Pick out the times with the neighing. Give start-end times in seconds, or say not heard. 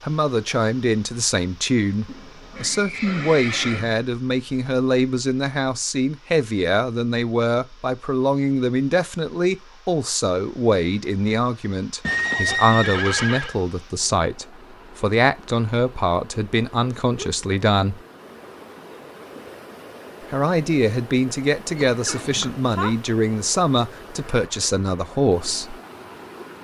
2.0-3.9, 12.0-13.6, 21.8-22.9.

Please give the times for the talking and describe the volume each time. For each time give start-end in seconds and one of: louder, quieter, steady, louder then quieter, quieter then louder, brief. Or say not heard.
0.0-18.0 steady
20.3-25.8 steady.